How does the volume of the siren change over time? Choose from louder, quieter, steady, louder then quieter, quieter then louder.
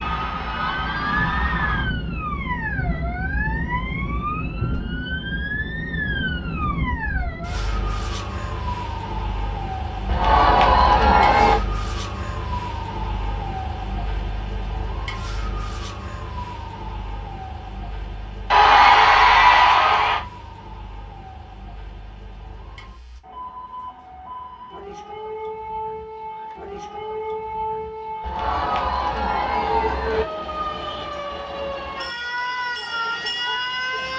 quieter then louder.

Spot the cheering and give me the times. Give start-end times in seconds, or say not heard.
0.0-1.9, 10.1-11.6, 18.5-20.2, 28.2-30.2.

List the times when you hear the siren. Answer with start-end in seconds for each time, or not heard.
0.0-34.1.